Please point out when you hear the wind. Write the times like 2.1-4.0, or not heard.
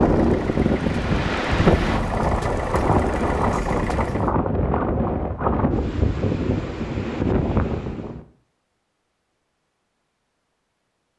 0.0-8.2.